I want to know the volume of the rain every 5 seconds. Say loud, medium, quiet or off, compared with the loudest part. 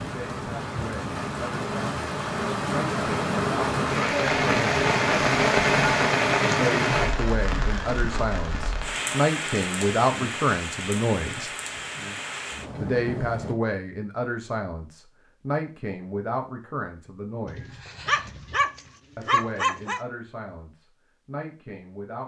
loud, loud, medium, off, off.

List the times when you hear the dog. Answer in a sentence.
You can hear the dog from 17.4 to 20.0 s.